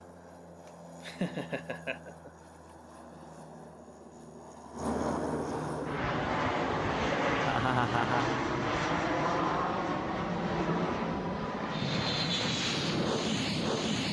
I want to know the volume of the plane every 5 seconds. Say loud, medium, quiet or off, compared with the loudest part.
quiet, loud, loud.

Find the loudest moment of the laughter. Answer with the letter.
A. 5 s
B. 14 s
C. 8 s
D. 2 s
C.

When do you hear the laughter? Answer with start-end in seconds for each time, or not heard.
0.7-2.3, 7.4-8.2.